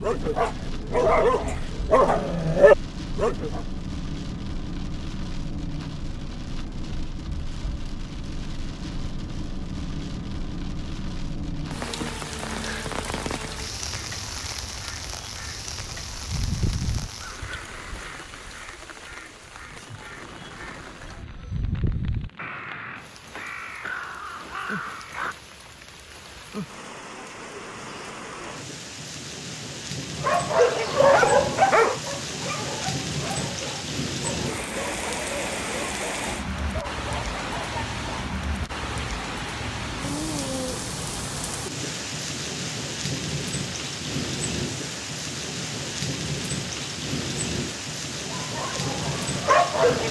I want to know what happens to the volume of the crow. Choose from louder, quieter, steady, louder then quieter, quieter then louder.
quieter then louder.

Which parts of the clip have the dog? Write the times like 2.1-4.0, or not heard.
0.0-3.6, 30.2-38.3, 48.2-50.0.